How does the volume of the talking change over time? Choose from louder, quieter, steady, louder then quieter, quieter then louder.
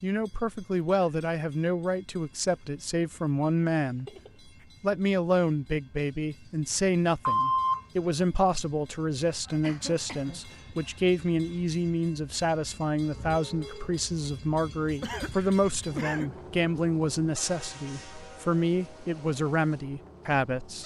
steady.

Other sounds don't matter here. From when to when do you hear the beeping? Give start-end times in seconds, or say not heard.
7.2-8.7.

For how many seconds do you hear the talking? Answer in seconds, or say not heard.
20 s.